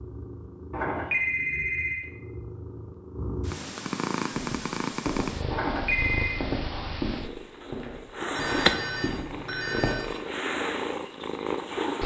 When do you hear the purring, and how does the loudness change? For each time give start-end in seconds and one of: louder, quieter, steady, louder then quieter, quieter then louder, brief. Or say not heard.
0.0-12.0 louder.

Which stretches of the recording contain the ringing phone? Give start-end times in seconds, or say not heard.
0.7-2.1, 5.5-6.4, 8.3-10.1.